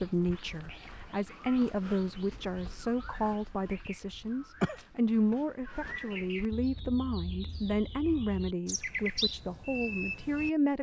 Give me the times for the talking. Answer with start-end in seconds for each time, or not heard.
0.0-10.7.